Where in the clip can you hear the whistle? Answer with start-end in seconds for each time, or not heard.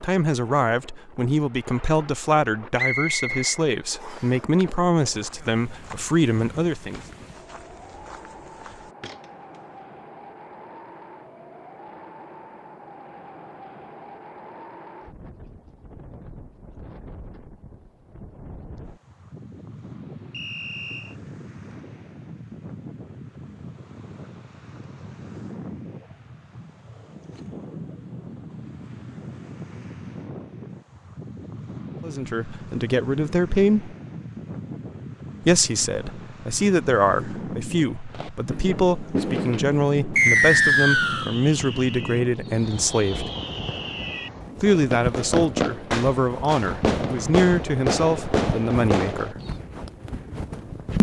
2.8-4.2, 20.3-21.1, 40.1-41.2.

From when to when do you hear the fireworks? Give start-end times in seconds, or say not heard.
38.1-49.5.